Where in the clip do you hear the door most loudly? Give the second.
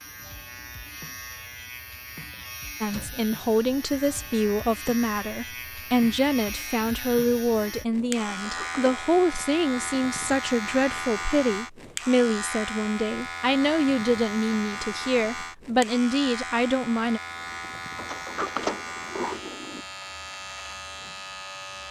19 s.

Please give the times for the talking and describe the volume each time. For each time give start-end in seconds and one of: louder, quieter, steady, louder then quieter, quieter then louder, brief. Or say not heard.
2.8-17.2 steady.